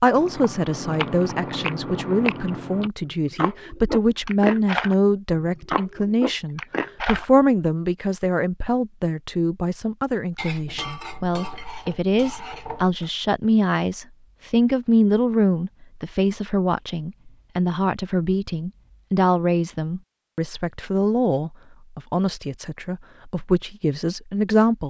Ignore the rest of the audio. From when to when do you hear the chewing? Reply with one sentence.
The chewing can be heard from 0.1 to 7.3 s.